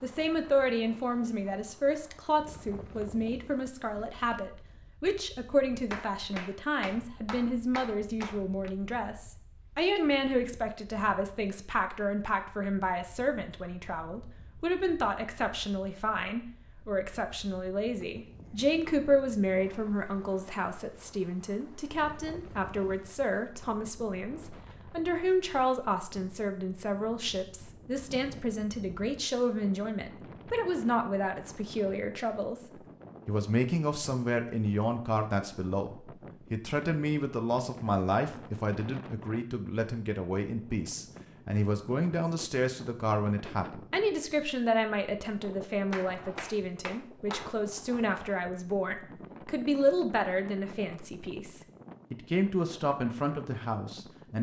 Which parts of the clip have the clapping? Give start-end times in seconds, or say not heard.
5.9-8.7, 45.9-47.5.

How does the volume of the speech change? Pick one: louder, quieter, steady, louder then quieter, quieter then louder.
steady.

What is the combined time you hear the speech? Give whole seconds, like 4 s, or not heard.
54 s.